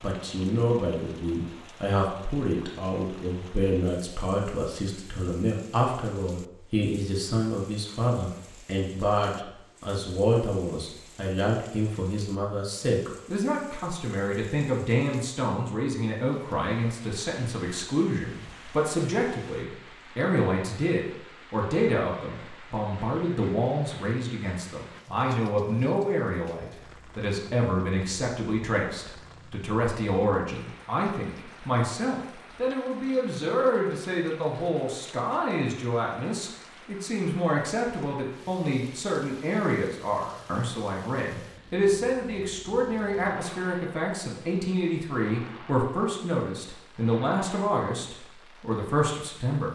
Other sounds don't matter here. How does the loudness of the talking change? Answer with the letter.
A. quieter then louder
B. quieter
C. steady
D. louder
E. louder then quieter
C.